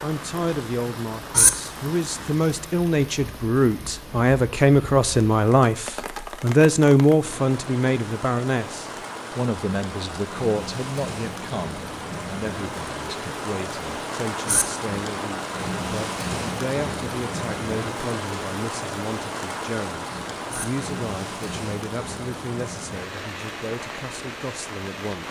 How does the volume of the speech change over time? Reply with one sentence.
The loudness of the speech goes down.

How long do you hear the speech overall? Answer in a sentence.
The speech can be heard for 25 seconds in total.